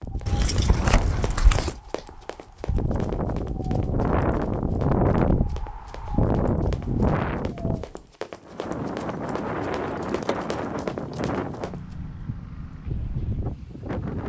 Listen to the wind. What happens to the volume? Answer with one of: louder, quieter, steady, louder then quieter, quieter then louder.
louder then quieter.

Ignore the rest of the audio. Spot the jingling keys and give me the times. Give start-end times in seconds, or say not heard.
0.2-1.8, 9.8-11.3.